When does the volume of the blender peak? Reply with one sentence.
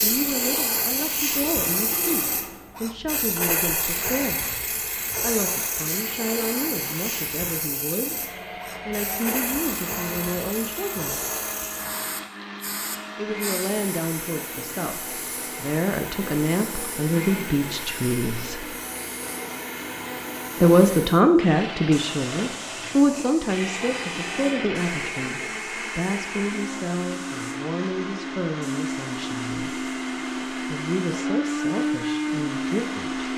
The volume of the blender peaks at 32 seconds.